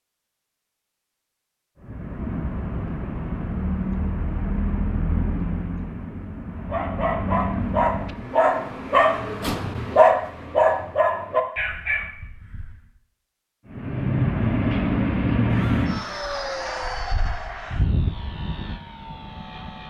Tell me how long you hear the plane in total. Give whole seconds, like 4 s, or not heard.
13 s.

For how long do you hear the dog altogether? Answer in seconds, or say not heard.
6 s.